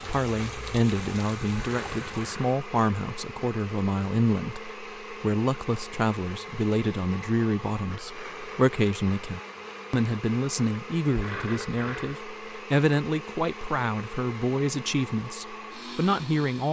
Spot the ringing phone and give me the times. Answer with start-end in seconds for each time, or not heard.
1.6-2.5, 11.2-12.2.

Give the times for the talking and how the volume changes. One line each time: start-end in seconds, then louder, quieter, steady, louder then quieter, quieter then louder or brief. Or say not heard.
0.1-16.6 steady.